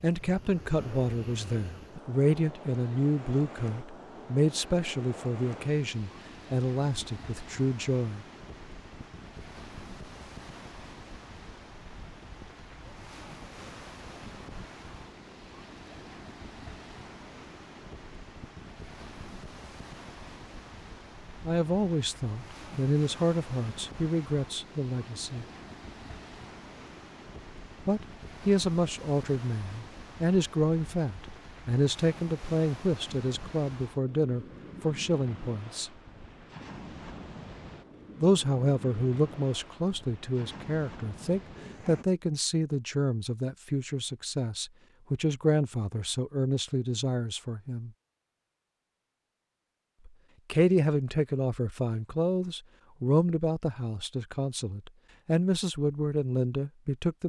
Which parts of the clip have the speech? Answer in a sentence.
The speech can be heard from 0.0 to 8.2 s, from 21.4 to 25.4 s, from 27.9 to 35.9 s, from 38.2 to 47.9 s and from 50.0 to 57.2 s.